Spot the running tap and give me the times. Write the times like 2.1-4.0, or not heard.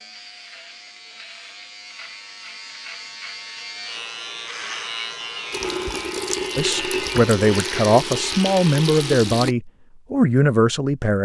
5.5-9.6.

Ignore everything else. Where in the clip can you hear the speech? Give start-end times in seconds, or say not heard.
6.5-11.1.